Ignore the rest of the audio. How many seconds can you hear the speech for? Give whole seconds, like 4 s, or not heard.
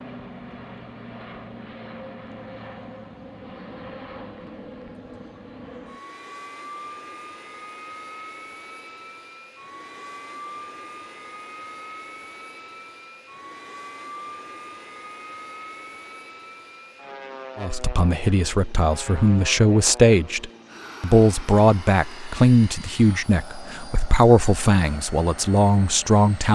9 s.